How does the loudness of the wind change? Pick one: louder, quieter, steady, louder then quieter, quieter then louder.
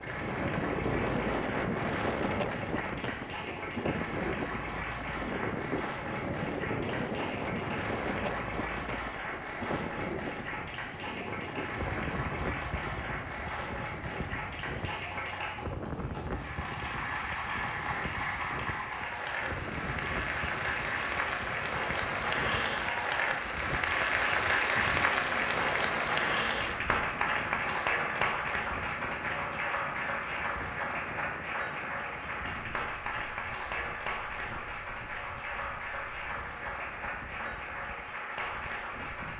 quieter.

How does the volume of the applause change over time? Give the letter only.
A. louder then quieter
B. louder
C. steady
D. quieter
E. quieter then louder
A.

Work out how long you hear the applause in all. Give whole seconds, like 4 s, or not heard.
39 s.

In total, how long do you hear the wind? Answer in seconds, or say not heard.
39 s.